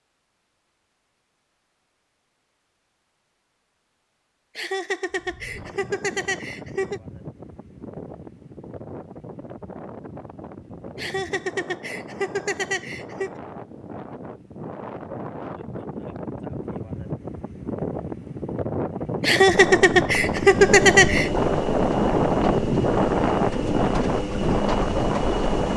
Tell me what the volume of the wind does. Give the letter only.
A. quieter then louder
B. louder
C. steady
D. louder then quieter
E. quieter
B.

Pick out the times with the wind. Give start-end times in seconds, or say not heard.
5.1-25.7.